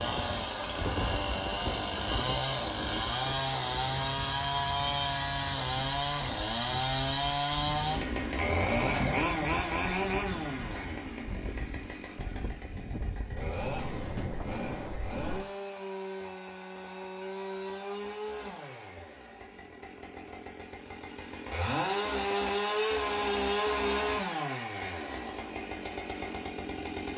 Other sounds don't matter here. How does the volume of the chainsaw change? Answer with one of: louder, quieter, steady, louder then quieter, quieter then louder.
quieter then louder.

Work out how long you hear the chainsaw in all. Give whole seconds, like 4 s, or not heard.
27 s.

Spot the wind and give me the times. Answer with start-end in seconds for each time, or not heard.
0.0-15.4.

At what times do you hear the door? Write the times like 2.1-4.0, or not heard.
8.7-9.3.